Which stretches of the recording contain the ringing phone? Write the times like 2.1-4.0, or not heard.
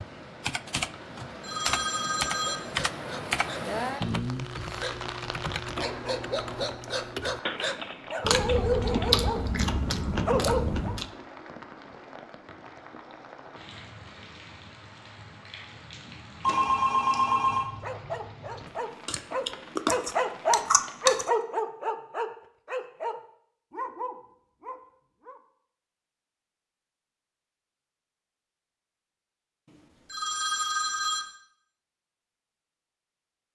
1.4-2.6, 16.4-17.7, 30.1-31.2.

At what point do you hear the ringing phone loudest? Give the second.
17 s.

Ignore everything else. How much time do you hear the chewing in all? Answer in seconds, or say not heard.
5 s.